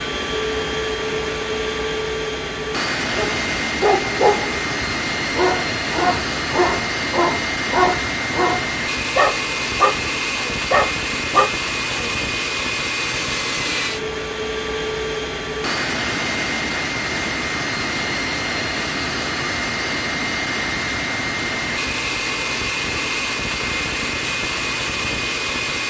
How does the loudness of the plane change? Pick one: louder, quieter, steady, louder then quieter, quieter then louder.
steady.